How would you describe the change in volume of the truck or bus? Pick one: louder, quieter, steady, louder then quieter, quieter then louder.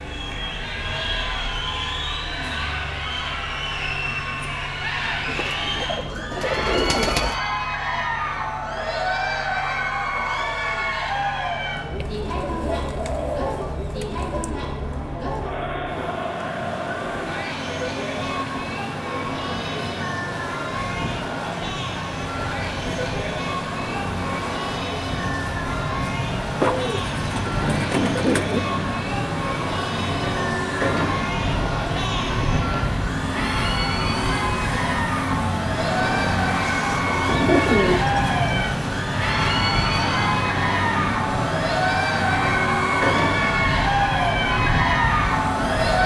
louder.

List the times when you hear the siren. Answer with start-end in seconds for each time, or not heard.
not heard.